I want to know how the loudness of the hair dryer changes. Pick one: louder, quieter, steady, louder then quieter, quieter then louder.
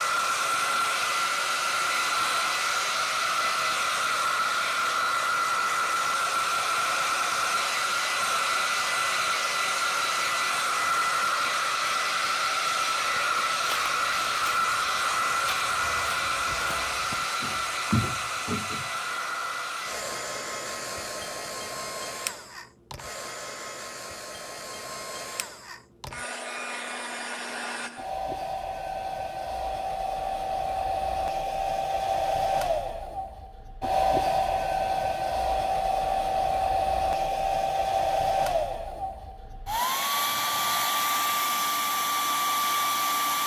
quieter then louder.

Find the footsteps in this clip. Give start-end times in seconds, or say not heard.
13.2-18.9.